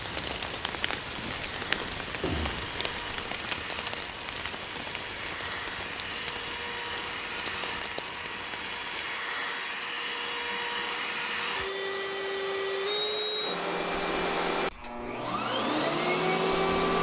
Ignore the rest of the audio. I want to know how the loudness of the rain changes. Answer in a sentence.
The volume of the rain goes down.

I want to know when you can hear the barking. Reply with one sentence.
The barking can't be heard in this clip.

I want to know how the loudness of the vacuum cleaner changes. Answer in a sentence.
The volume of the vacuum cleaner goes up.